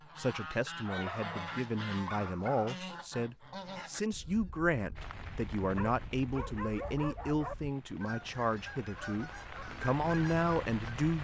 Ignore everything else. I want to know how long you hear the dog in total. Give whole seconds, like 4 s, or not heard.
4 s.